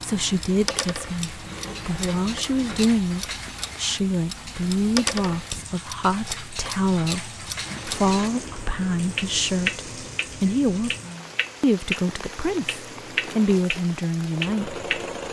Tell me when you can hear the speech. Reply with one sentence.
The speech can be heard from 0.0 to 10.9 s and from 11.6 to 14.8 s.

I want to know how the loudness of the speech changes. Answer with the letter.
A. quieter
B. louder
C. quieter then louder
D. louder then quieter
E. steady
E.